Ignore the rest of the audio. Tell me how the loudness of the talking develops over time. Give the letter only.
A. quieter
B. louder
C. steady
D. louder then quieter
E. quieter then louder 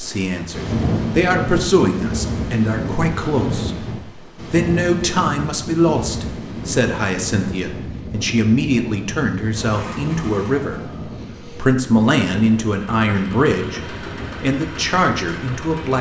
C.